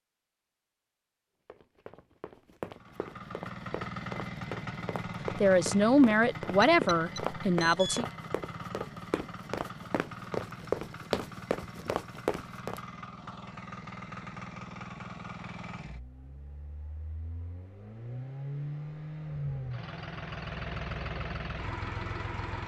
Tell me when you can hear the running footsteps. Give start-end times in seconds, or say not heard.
1.4-12.8.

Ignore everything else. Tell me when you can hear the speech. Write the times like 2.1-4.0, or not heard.
5.3-8.1.